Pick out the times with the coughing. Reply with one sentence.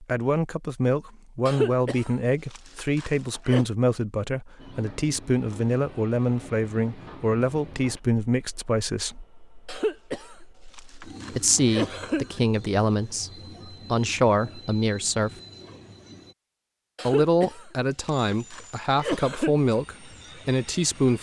You can hear the coughing from 1.4 to 3.6 s, from 9.7 to 12.4 s and from 16.9 to 19.6 s.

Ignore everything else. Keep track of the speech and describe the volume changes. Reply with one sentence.
The loudness of the speech stays about the same.